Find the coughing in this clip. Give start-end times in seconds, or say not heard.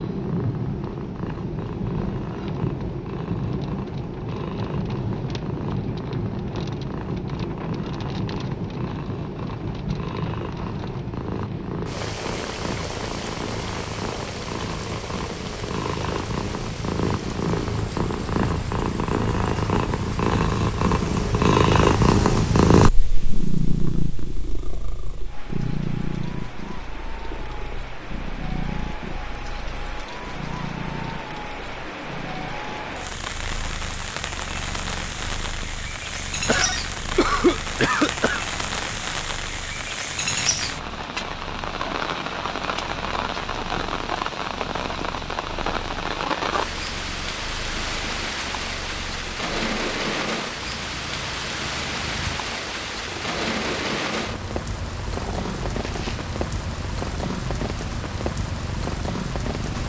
36.5-38.5.